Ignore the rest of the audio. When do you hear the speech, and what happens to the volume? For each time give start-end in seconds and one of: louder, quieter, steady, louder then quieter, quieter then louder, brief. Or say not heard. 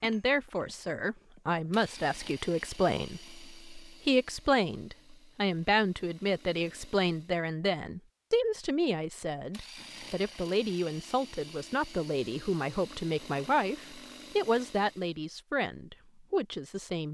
0.0-17.0 steady.